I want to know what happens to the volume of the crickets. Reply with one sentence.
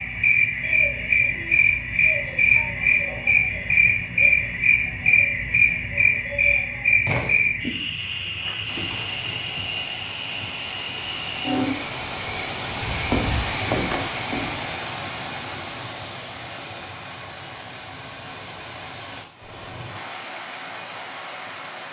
The loudness of the crickets goes down.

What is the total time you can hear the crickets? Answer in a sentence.
The crickets can be heard for 15 seconds in total.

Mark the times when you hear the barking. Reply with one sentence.
The barking can't be heard in this clip.